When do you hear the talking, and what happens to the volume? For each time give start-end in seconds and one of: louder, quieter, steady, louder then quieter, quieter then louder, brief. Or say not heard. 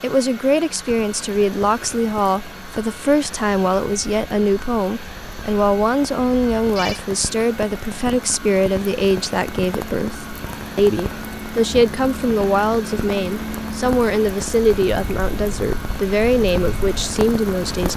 0.0-17.9 steady.